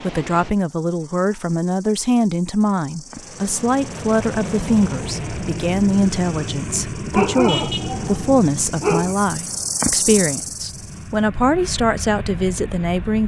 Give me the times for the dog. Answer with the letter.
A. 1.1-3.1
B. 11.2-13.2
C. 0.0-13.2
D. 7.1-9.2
D.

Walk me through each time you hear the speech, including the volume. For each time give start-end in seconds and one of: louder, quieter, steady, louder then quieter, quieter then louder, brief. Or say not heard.
0.0-13.2 steady.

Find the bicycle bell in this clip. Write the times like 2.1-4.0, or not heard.
not heard.